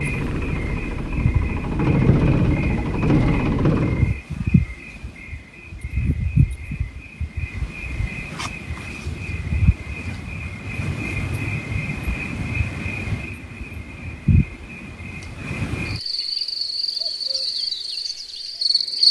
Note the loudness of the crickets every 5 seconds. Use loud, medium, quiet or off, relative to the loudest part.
medium, medium, medium, loud.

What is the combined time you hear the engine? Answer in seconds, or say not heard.
4 s.